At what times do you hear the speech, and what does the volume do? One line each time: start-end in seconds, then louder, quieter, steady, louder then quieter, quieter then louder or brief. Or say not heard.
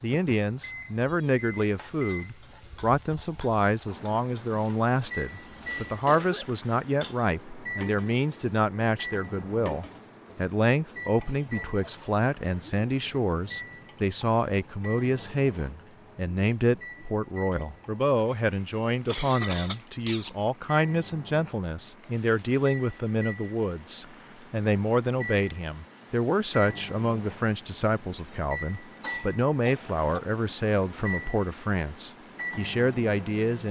0.0-33.6 steady.